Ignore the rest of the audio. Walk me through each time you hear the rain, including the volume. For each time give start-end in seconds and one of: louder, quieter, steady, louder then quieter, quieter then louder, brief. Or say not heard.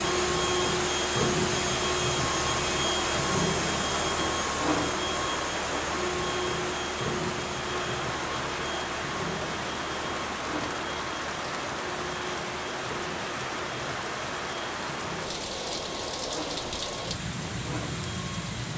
0.0-18.7 steady.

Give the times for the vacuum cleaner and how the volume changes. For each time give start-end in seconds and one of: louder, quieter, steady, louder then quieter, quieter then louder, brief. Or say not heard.
0.0-18.7 quieter.